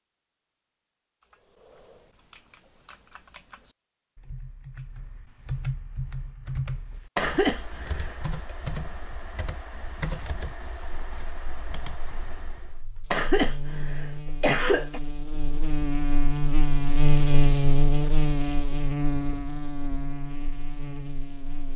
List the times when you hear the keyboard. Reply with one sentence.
The keyboard can be heard from 1.2 to 12.8 s.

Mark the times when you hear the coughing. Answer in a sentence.
The coughing can be heard from 7.2 to 8.2 s and from 13.1 to 15.0 s.